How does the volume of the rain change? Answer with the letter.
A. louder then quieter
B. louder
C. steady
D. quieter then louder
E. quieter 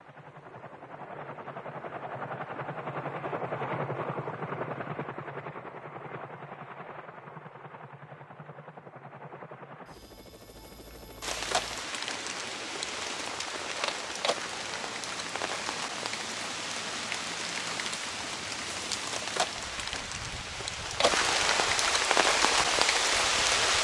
B.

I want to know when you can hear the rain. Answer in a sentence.
The rain can be heard from 11.2 to 23.7 s.